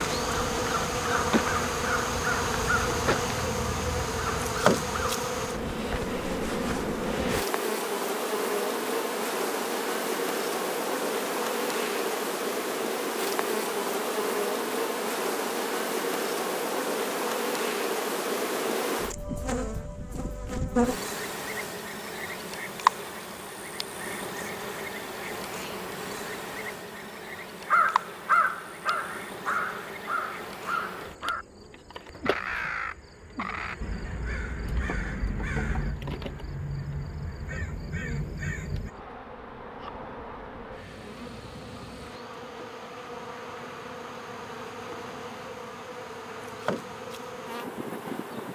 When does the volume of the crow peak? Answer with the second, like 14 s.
28 s.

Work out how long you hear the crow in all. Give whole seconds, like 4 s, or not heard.
16 s.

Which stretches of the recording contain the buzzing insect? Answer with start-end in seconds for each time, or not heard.
0.0-48.5.